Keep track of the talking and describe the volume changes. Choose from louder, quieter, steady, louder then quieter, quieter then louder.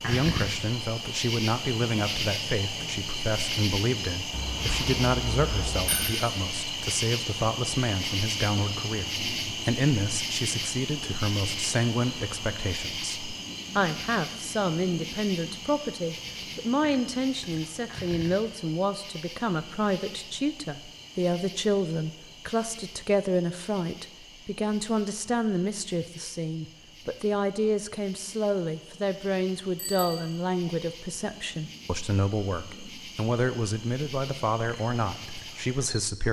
steady.